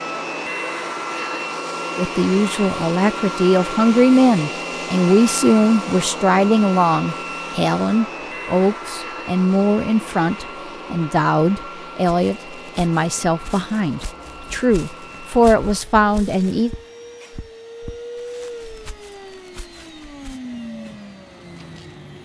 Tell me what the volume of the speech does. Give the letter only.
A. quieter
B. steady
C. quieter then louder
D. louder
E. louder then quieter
B.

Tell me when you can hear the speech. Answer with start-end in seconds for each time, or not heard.
1.9-16.7.